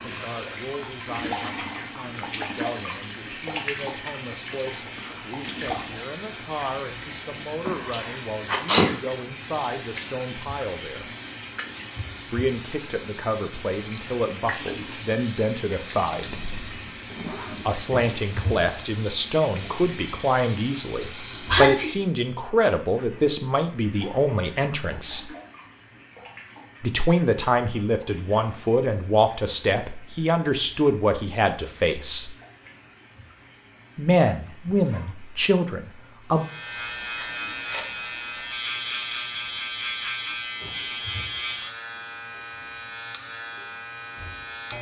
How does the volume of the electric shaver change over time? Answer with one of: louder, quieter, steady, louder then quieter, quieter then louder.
steady.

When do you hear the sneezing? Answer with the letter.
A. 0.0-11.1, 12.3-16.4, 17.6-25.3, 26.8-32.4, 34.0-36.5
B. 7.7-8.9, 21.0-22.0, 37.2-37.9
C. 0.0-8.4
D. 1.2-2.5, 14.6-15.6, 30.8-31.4
B.